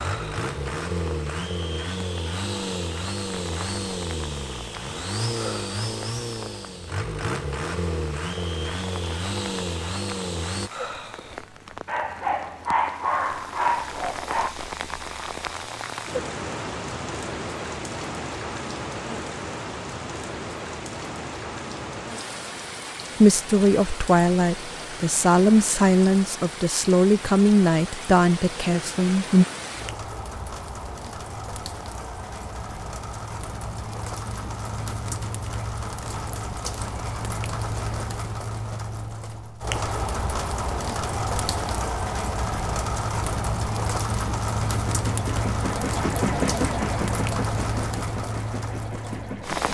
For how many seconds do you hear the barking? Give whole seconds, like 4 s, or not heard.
3 s.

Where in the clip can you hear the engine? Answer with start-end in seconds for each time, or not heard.
0.0-10.7, 44.7-49.6.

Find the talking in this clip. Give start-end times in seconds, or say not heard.
23.2-29.4.